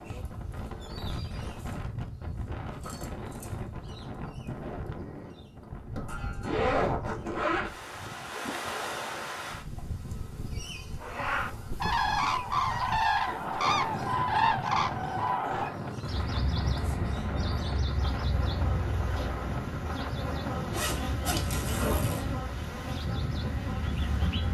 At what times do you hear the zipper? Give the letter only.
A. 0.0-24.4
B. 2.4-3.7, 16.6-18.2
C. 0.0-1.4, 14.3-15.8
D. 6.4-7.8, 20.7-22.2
D.